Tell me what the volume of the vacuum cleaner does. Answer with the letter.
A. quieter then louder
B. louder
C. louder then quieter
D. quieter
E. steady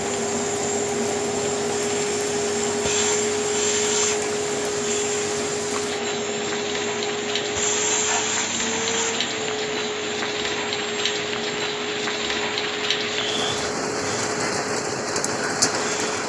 D.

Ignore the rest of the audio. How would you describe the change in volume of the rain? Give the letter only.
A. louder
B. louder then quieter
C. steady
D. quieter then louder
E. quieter
A.